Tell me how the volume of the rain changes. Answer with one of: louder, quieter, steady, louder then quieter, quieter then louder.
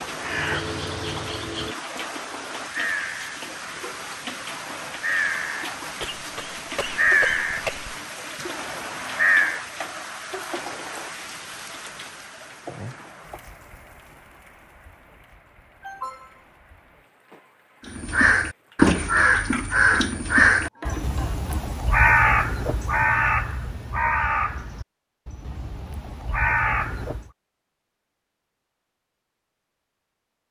quieter.